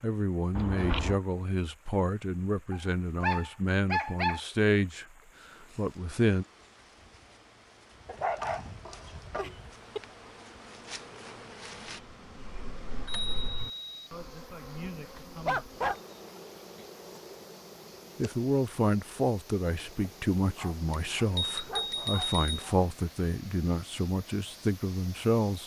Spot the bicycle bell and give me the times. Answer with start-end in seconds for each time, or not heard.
0.6-1.2, 13.1-13.9, 20.9-22.6.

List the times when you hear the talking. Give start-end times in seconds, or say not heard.
0.0-5.0, 5.8-6.5, 18.1-25.6.